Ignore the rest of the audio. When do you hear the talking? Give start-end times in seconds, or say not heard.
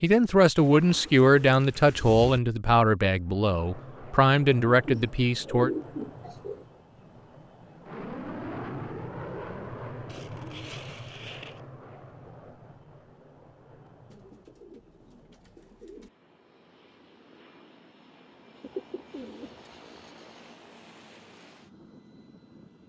0.0-5.7.